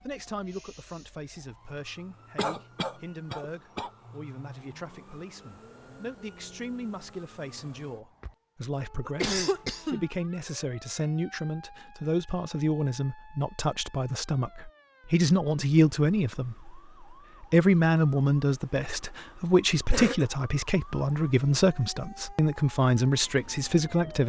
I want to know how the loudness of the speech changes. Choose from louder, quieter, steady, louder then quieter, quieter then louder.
louder.